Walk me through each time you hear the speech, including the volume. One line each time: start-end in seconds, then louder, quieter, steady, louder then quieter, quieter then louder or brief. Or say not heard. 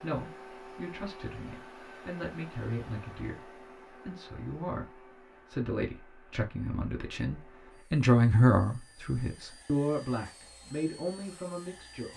0.0-12.1 louder then quieter.